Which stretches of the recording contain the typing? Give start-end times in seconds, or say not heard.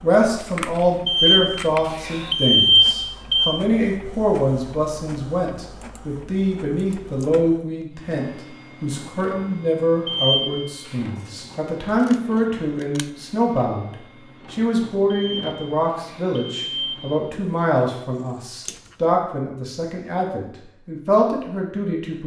not heard.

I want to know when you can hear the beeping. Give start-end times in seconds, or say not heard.
1.1-3.5, 10.1-11.0, 15.1-17.1.